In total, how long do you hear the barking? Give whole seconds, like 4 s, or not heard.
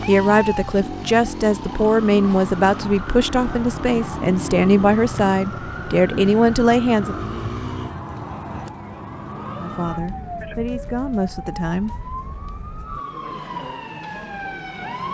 not heard.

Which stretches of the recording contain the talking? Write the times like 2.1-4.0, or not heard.
0.0-7.2, 9.6-11.9.